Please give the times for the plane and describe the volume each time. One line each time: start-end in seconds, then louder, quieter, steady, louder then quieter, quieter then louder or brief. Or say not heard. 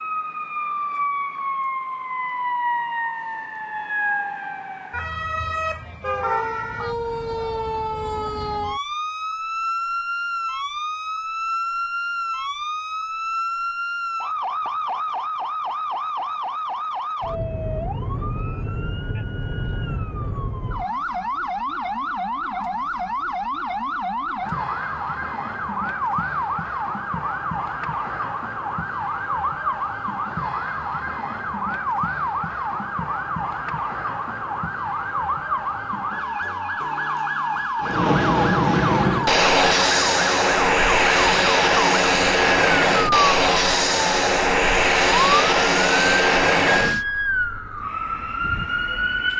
37.8-47.0 steady.